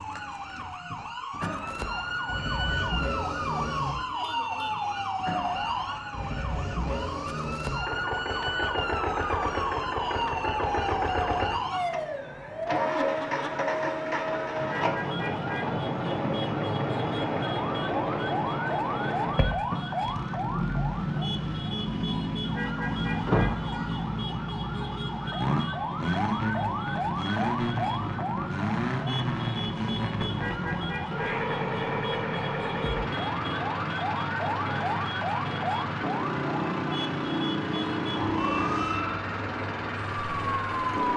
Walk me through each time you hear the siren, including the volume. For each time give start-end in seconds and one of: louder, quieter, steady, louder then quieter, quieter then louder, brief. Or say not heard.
0.0-41.1 steady.